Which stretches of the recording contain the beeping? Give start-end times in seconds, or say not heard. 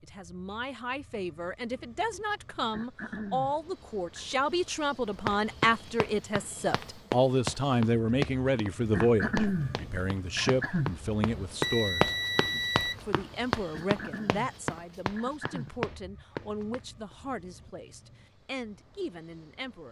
11.6-13.1.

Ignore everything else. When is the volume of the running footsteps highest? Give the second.
12 s.